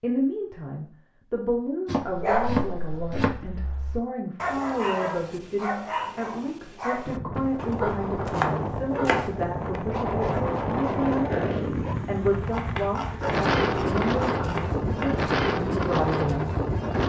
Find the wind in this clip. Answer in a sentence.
You can hear the wind from 7.0 to 17.0 s.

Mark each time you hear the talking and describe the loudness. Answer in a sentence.
The talking can be heard from 0.0 to 16.6 s, at a steady volume.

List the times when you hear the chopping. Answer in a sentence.
The chopping can be heard from 1.9 to 3.4 s, from 7.5 to 9.4 s and from 12.4 to 15.2 s.